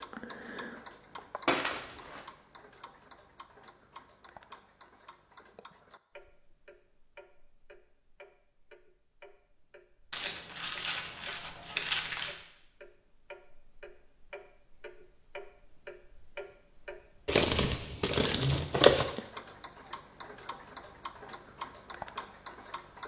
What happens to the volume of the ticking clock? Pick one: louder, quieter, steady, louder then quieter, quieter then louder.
quieter then louder.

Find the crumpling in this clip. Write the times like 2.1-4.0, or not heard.
1.4-2.2, 10.1-12.3, 17.2-19.1.